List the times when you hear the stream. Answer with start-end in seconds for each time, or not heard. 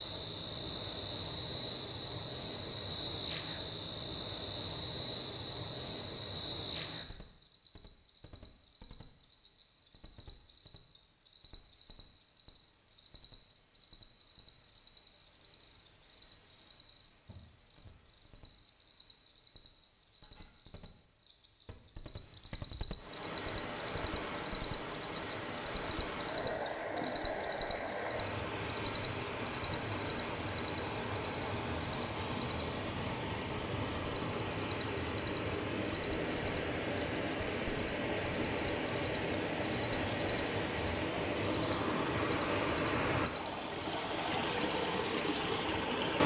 22.9-46.2.